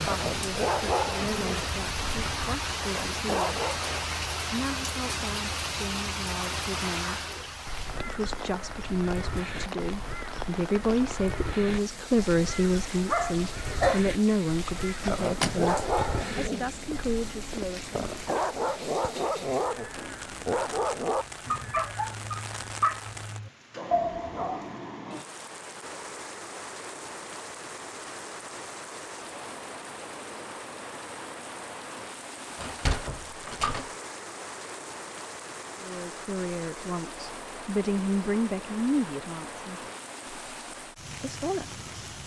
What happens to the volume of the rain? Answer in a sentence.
The volume of the rain goes down.